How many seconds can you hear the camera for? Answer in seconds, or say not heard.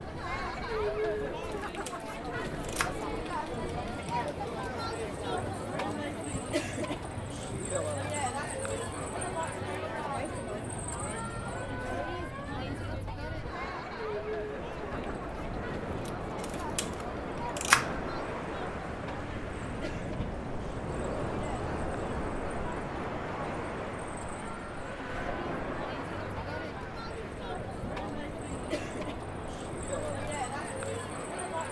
3 s.